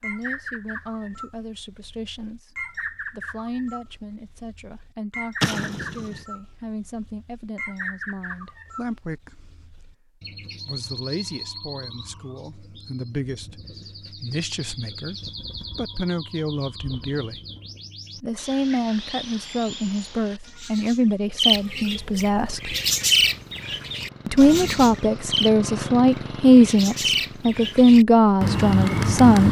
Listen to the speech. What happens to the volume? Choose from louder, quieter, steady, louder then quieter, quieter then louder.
louder.